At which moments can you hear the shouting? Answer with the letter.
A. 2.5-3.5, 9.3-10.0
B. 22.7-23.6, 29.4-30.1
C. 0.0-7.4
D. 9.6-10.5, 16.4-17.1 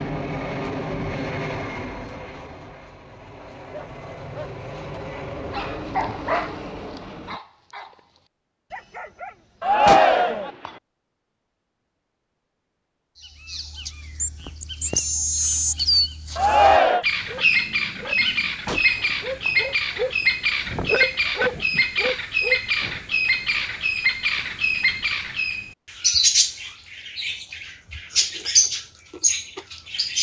D.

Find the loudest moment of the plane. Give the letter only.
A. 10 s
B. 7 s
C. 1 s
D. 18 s
C.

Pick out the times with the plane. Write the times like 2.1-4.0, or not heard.
0.0-7.4.